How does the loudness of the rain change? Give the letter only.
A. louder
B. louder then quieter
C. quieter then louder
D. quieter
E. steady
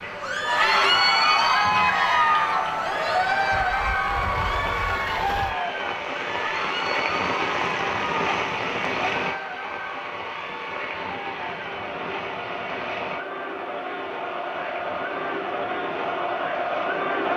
B.